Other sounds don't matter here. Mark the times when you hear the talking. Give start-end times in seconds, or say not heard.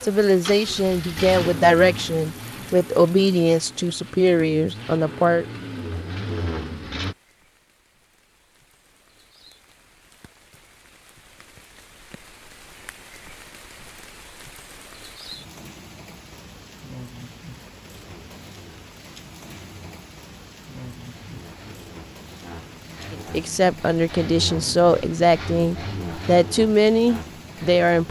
0.0-5.5, 23.1-28.0.